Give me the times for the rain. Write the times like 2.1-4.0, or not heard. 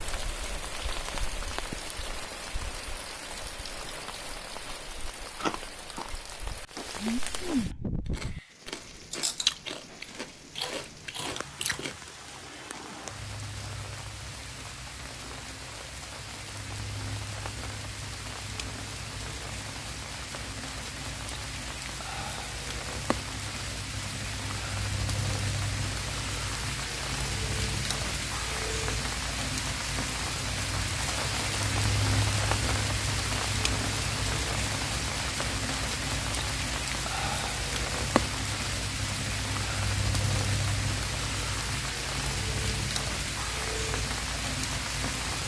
0.0-45.4.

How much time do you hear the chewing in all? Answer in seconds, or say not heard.
7 s.